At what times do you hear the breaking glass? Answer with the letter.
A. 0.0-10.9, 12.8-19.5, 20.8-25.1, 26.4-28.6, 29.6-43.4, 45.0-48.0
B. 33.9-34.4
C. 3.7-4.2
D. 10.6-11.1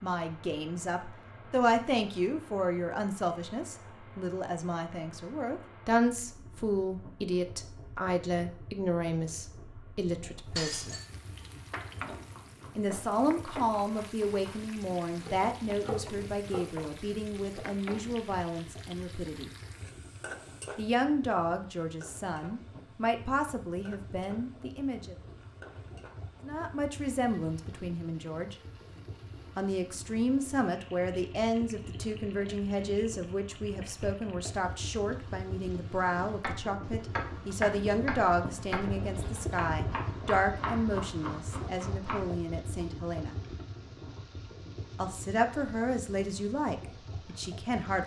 D.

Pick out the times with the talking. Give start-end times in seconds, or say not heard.
0.0-10.9, 12.8-19.5, 20.8-25.1, 26.4-28.6, 29.6-43.4, 45.0-48.0.